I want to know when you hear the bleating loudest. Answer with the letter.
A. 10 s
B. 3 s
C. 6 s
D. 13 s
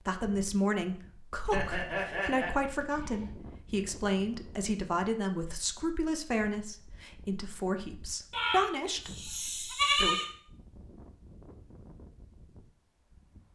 A.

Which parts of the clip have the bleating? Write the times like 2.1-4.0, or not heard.
1.5-3.3, 8.3-10.2.